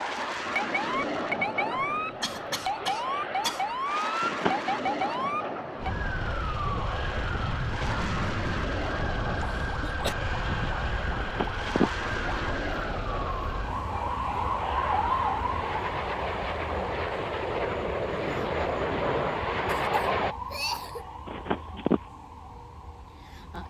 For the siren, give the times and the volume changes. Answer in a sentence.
You can hear the siren from 0.1 to 23.6 s, getting quieter.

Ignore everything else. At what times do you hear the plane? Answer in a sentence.
The plane can be heard from 0.0 to 20.4 s.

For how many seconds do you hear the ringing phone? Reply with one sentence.
The ringing phone can be heard for 2 seconds in total.